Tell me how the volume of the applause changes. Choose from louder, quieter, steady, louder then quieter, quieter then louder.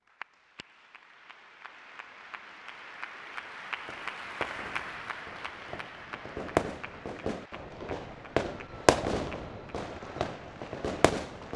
louder then quieter.